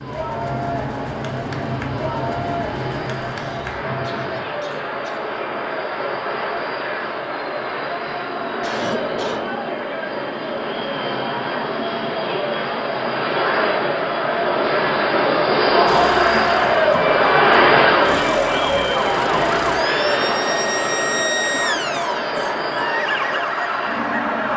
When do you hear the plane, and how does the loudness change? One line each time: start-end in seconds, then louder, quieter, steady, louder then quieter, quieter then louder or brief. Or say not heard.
0.0-24.5 louder then quieter.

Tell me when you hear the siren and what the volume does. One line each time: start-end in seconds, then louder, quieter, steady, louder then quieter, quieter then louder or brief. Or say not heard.
15.8-24.5 steady.